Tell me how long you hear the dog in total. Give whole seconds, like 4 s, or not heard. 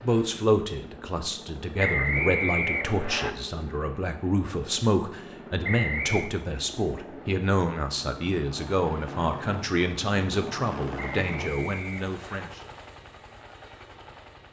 not heard.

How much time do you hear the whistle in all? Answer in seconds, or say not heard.
4 s.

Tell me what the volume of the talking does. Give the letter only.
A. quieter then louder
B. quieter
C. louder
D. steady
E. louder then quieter
D.